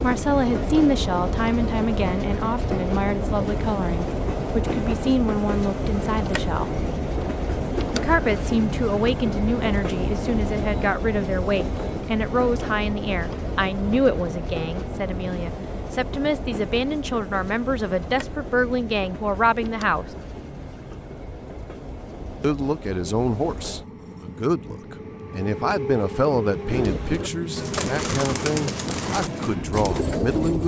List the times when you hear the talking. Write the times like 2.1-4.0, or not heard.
0.0-6.8, 7.9-20.1, 22.4-30.6.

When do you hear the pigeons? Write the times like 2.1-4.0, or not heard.
26.6-30.6.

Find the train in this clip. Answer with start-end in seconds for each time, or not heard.
0.0-30.6.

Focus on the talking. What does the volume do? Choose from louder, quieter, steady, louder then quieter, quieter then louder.
steady.